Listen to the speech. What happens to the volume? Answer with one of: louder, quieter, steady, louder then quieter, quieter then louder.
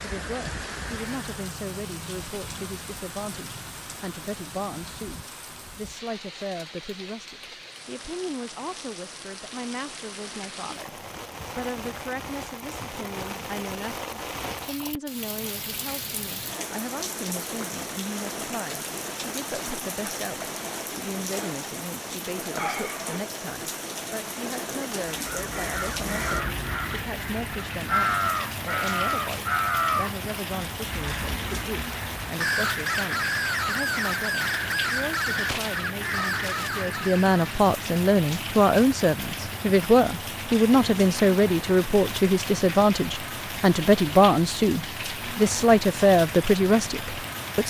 louder.